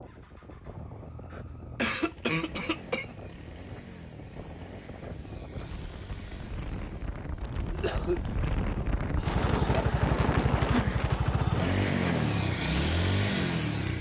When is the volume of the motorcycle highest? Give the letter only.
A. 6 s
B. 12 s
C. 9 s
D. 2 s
B.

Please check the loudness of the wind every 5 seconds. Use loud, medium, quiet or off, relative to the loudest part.
quiet, loud, loud.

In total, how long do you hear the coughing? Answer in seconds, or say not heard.
3 s.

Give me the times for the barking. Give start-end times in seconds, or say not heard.
not heard.